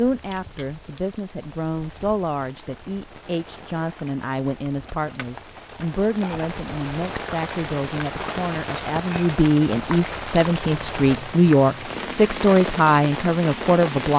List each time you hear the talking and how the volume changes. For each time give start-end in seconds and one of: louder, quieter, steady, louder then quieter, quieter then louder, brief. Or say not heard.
0.0-14.1 louder.